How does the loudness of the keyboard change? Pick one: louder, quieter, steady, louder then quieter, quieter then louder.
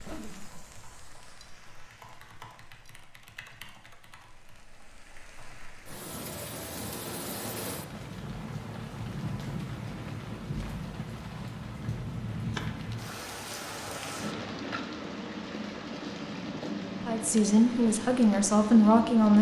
louder then quieter.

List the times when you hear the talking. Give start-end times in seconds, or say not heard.
17.1-19.3.